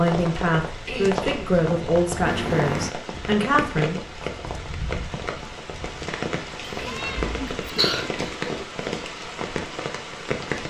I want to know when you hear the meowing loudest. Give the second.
3 s.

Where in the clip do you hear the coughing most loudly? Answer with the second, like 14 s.
8 s.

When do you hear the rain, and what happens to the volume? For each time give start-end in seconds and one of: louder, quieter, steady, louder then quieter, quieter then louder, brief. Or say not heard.
0.0-10.6 steady.